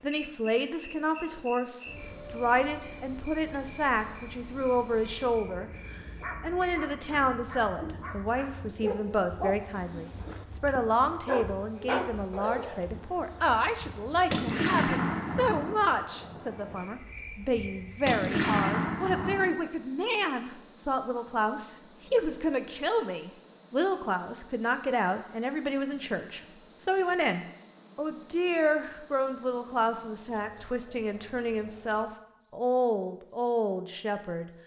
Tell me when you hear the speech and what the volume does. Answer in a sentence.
The speech can be heard from 0.0 to 34.5 s, at a steady volume.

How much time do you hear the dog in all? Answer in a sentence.
You can hear the dog for 7 seconds altogether.